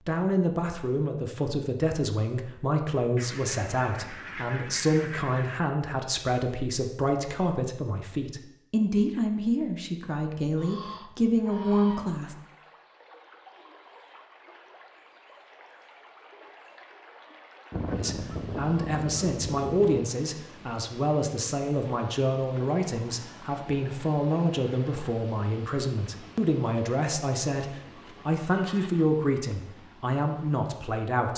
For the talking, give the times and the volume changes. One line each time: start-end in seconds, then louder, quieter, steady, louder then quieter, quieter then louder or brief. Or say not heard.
0.1-12.3 steady
17.9-31.3 steady.